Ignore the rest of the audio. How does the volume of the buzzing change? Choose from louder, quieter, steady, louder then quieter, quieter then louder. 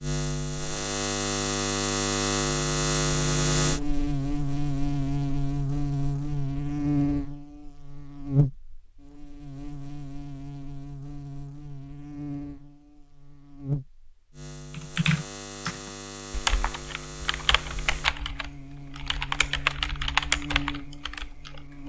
quieter.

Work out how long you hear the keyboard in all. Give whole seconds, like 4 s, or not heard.
7 s.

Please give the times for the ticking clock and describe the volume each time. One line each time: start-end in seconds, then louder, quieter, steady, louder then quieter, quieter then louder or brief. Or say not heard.
not heard.